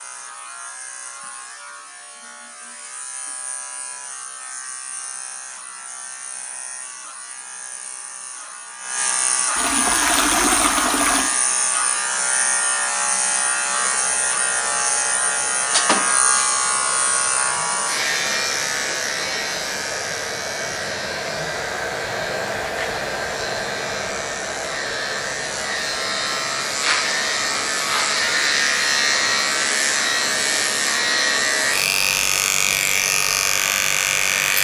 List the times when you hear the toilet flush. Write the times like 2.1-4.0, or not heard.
9.6-11.3.